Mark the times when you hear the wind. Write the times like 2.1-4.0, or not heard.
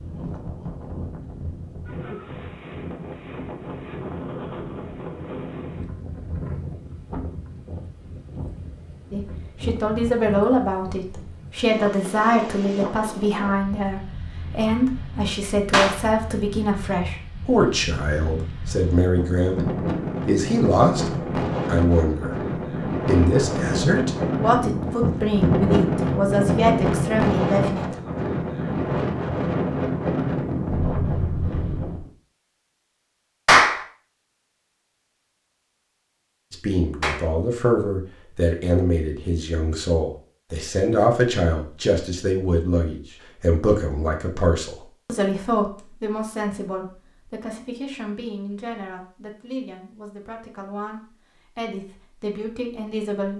0.0-32.1.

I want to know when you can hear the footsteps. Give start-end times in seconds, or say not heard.
not heard.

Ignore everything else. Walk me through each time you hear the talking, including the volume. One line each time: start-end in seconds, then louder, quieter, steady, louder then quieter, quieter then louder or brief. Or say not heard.
9.1-27.9 steady
36.5-53.3 quieter.